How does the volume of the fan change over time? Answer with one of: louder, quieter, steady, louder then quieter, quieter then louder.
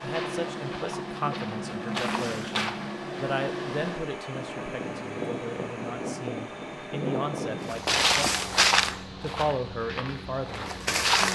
quieter.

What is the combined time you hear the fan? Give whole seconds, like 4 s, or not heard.
11 s.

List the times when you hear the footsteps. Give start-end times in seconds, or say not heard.
0.0-3.0, 7.7-11.3.